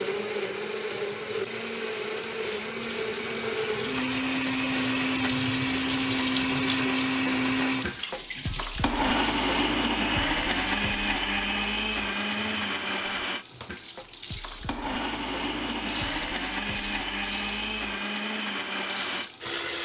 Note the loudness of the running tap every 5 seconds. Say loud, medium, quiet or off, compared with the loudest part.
medium, loud, quiet, medium.